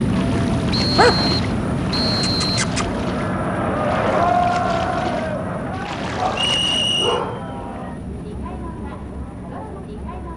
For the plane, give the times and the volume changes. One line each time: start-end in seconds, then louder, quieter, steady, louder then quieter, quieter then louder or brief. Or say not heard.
0.0-10.3 quieter.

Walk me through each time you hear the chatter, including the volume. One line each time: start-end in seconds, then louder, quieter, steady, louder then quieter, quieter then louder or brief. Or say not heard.
0.0-10.3 louder then quieter.